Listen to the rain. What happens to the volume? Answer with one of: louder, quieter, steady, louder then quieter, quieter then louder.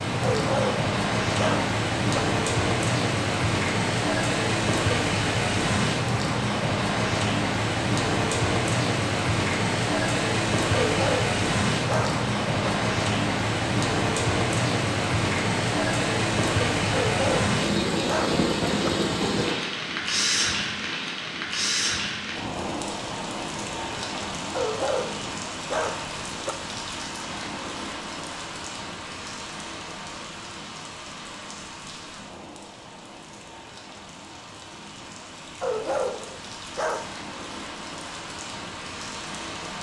quieter.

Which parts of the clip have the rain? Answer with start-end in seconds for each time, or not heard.
0.0-39.7.